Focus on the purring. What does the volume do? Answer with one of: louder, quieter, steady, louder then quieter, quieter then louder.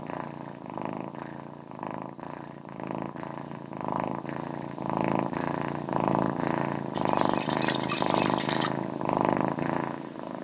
louder.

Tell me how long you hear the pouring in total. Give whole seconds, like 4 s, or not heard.
2 s.